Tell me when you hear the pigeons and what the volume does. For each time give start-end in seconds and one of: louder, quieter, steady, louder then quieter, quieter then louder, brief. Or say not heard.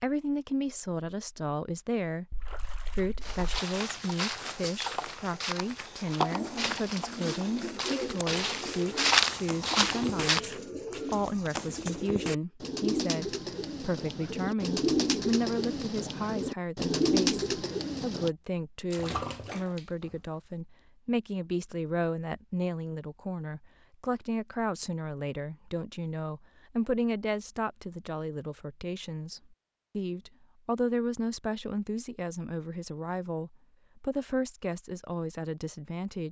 6.3-18.3 louder.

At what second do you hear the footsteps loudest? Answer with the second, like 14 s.
9 s.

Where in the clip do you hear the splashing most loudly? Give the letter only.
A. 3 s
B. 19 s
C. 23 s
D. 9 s
B.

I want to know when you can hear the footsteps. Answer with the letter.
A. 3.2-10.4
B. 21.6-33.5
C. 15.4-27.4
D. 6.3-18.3
A.